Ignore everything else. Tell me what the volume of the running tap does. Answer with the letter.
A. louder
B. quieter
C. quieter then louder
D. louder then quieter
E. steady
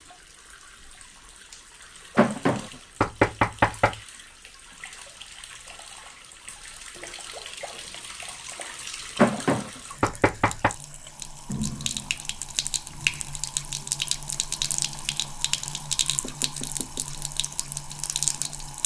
A.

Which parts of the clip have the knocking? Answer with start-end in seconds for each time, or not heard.
2.1-4.0, 9.2-10.8, 16.2-17.1.